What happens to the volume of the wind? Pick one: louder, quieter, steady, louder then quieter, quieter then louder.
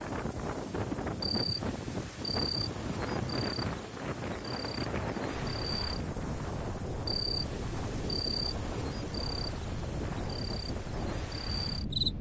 steady.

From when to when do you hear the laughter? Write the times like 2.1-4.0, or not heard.
not heard.